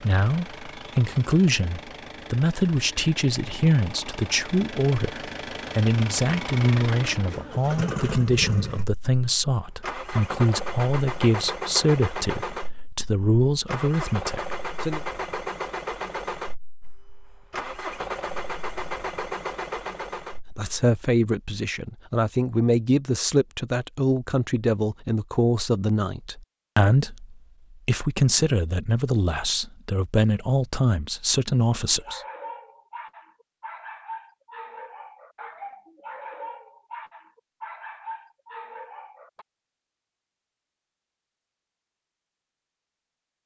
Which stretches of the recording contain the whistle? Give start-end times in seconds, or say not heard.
not heard.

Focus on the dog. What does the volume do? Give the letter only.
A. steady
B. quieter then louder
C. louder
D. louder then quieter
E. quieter
A.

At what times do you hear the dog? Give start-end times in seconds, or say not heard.
31.9-39.5.